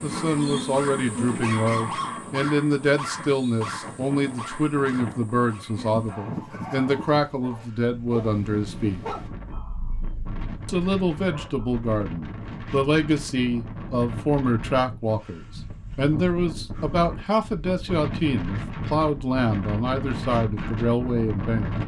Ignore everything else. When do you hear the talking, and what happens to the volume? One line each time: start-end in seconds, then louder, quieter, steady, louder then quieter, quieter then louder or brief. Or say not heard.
0.0-9.0 steady
10.7-21.8 steady.